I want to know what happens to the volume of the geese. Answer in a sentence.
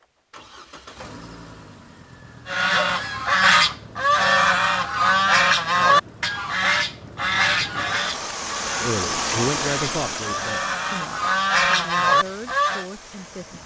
The volume of the geese goes down, then up.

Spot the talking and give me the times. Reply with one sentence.
The talking can be heard from 8.8 to 13.6 s.